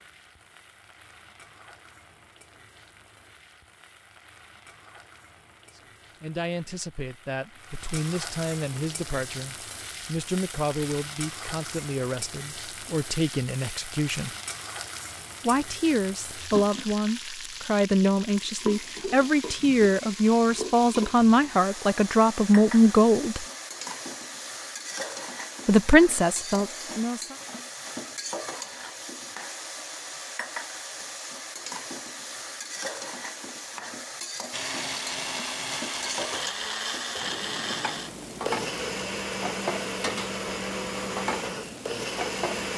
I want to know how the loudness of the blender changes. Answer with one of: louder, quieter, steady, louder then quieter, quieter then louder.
steady.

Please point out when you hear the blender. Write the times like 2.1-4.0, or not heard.
34.5-42.7.